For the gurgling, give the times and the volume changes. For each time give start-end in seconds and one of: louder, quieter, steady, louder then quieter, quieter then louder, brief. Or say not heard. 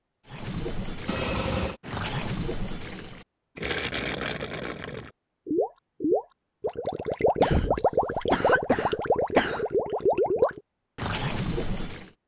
0.2-12.1 louder.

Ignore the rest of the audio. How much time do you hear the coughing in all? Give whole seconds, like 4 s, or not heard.
3 s.